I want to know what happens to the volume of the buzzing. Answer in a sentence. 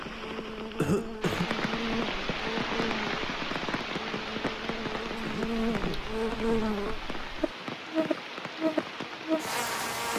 The volume of the buzzing goes up.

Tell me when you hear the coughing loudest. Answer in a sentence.
The loudest moment of the coughing is at 1 second.